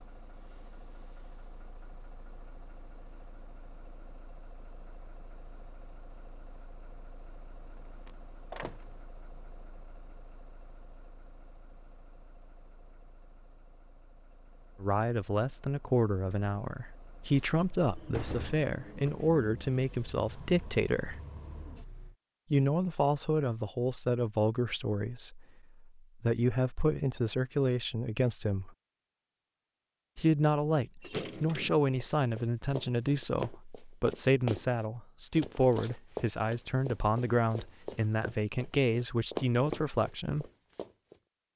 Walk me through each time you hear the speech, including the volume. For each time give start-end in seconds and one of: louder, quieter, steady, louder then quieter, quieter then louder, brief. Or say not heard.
14.8-21.2 steady
22.5-28.7 quieter then louder
30.1-40.5 steady.